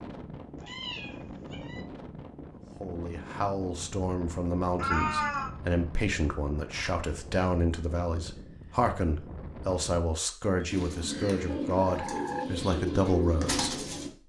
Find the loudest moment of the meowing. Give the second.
5 s.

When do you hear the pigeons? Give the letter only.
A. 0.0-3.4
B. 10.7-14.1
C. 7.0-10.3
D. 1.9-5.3
B.